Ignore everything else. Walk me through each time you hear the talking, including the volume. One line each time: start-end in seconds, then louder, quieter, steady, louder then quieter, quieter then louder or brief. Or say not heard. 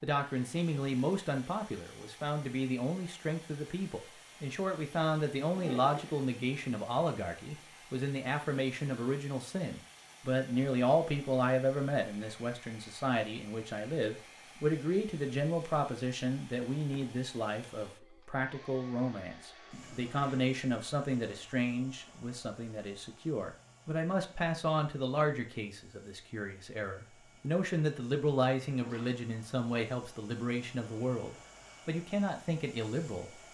0.0-33.3 steady.